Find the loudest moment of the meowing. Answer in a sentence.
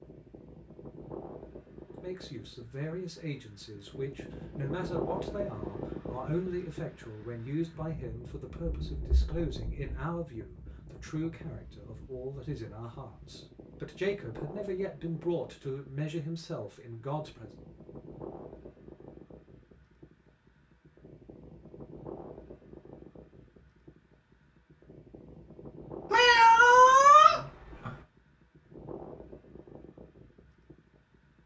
The volume of the meowing peaks at 27 seconds.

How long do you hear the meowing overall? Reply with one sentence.
The meowing can be heard for 3 seconds in total.